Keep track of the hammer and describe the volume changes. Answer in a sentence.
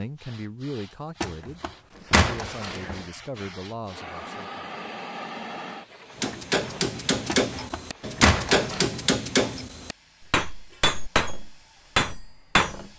The loudness of the hammer stays about the same.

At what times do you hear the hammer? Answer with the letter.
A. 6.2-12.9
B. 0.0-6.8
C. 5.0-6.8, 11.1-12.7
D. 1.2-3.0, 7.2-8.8
A.